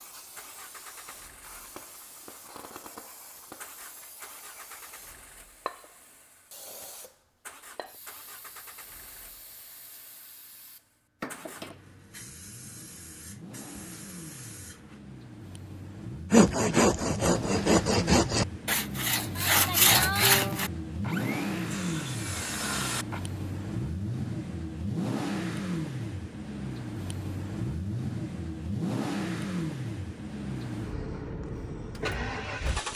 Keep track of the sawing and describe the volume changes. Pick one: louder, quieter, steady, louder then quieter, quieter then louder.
quieter.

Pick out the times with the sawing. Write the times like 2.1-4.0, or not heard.
16.3-23.2.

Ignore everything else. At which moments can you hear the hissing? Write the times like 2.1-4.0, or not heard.
0.0-15.0.